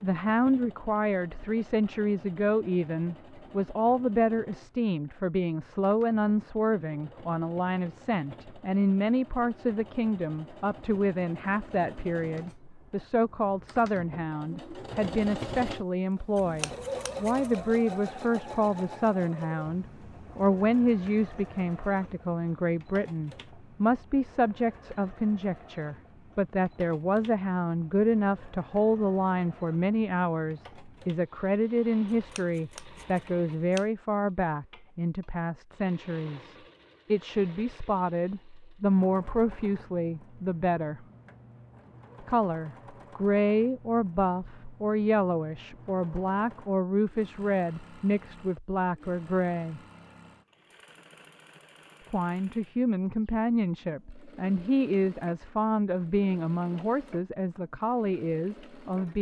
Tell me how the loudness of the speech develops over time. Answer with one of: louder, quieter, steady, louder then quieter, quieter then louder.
steady.